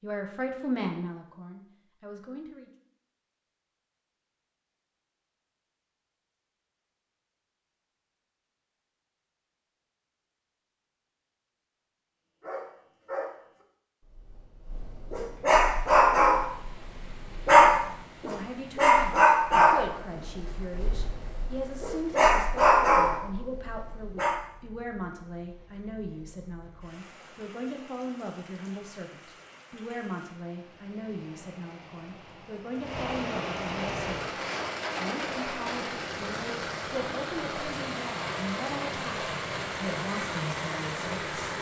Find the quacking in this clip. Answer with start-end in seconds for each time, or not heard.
not heard.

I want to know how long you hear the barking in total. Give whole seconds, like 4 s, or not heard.
12 s.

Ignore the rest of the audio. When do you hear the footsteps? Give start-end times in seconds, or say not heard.
not heard.